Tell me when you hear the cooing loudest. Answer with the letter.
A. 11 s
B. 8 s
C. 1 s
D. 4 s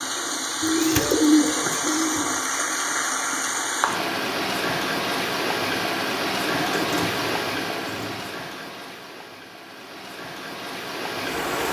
C.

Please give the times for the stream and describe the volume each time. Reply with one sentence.
The stream can be heard from 0.0 to 11.6 s, getting quieter.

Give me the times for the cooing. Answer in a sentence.
You can hear the cooing from 0.6 to 2.4 s and from 6.7 to 8.3 s.